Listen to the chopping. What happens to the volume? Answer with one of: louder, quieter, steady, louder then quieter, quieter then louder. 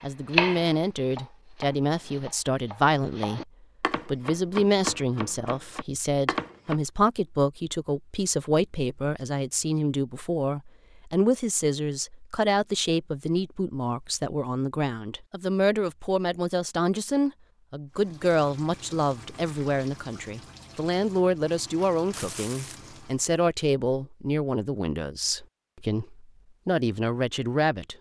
quieter then louder.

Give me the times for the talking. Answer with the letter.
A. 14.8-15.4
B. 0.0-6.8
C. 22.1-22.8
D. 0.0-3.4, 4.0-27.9
D.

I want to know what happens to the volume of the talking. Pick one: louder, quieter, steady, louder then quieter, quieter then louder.
steady.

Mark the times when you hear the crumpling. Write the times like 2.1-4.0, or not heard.
22.1-22.8.